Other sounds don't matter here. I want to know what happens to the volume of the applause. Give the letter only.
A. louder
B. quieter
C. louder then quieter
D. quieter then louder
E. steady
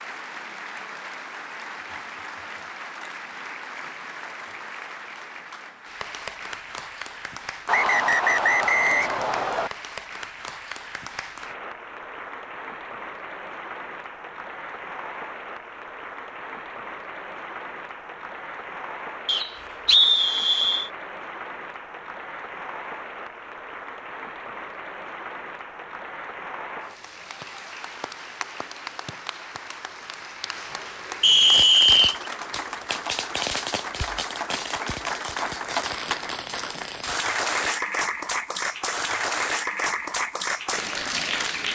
A.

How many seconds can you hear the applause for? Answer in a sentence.
The applause can be heard for 42 seconds in total.